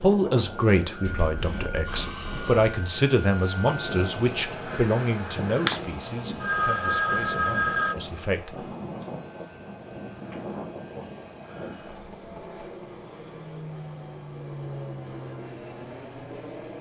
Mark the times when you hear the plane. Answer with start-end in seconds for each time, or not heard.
0.0-16.7.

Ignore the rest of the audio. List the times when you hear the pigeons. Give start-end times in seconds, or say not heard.
not heard.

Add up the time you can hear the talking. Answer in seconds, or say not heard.
9 s.